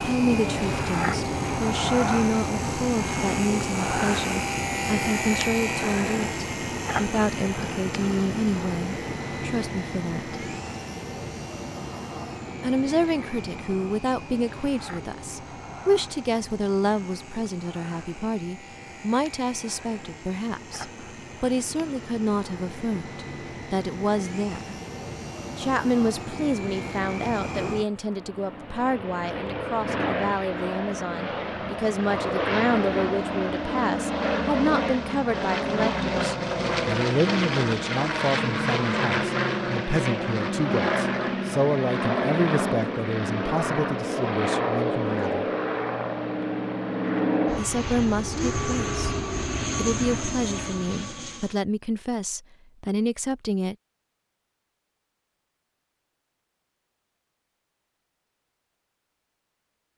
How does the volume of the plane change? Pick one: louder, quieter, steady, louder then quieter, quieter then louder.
quieter then louder.